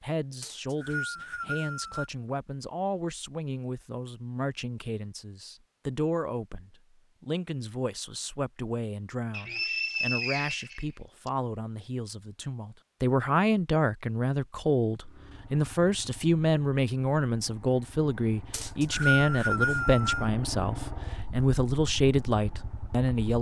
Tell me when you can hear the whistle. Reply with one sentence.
The whistle can be heard from 0.4 to 2.1 s, from 9.3 to 11.3 s and from 18.5 to 20.3 s.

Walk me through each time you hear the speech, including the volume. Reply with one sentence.
You can hear the speech from 0.0 to 23.3 s, getting louder.